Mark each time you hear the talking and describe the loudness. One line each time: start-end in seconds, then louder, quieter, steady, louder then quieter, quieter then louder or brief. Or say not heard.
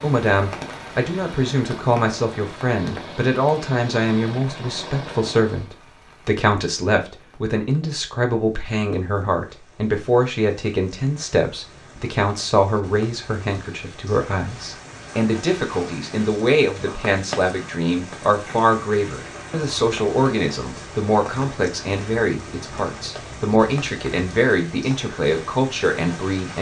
0.0-26.5 steady.